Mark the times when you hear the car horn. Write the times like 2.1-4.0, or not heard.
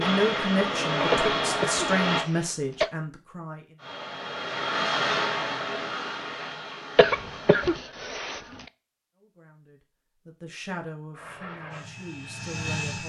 not heard.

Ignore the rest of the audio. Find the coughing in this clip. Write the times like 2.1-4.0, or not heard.
1.1-2.9, 7.0-8.4.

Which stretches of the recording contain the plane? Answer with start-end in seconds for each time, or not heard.
0.0-2.2, 3.8-7.8, 11.1-13.0.